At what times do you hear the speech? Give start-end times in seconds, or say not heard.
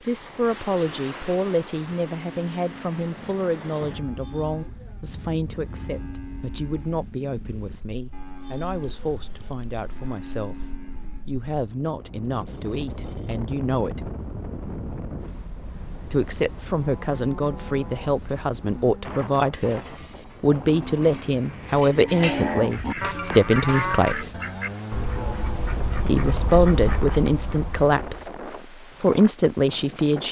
0.1-14.1, 16.1-24.4, 26.1-30.2.